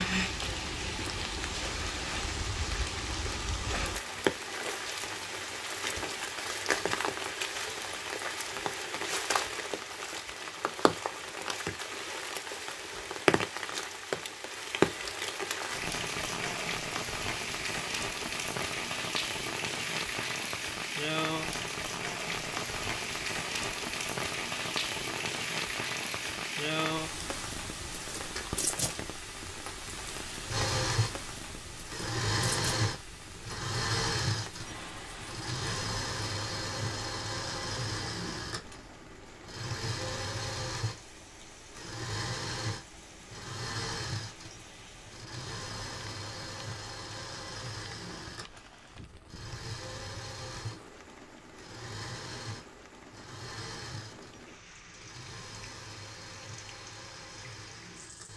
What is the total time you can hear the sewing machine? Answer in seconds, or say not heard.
28 s.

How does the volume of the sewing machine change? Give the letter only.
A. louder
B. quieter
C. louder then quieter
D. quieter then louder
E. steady
B.